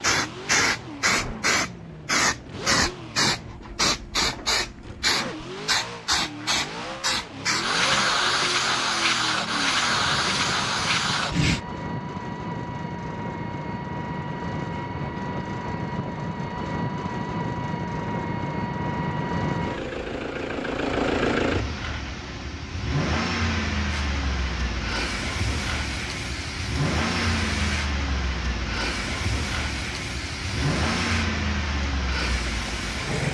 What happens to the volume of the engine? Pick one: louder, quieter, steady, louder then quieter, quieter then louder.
louder.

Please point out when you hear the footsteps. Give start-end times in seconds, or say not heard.
not heard.